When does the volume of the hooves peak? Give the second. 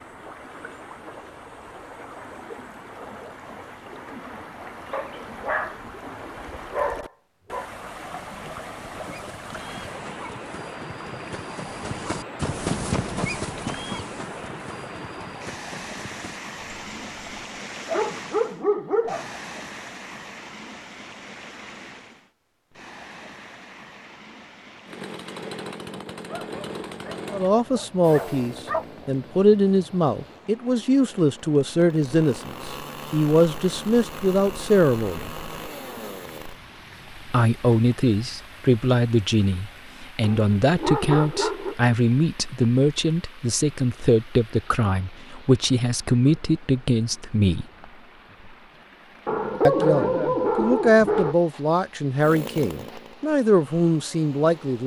13 s.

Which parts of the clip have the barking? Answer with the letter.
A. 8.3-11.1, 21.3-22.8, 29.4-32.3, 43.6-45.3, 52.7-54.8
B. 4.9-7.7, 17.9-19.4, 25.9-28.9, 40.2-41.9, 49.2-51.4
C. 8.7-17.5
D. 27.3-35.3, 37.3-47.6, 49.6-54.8
B.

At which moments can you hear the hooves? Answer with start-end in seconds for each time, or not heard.
8.7-17.5.